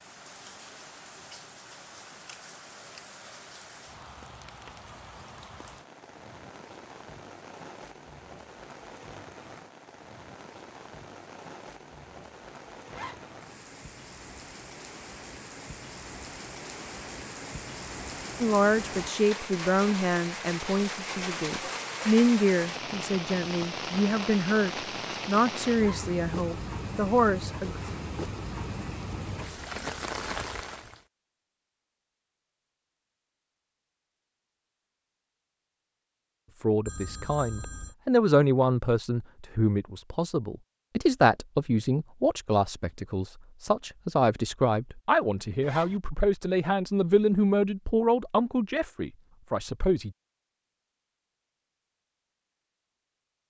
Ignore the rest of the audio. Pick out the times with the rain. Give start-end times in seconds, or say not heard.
0.0-31.1.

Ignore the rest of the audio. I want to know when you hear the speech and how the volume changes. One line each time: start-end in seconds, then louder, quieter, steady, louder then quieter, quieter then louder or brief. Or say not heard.
18.4-27.8 steady
36.6-50.1 steady.